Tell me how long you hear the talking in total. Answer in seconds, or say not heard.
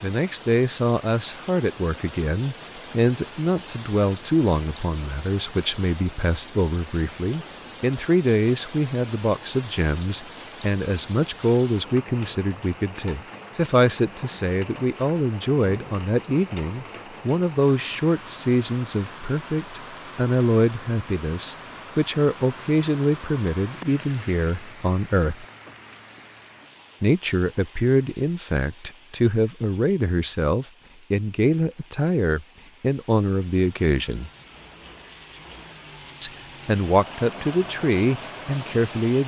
36 s.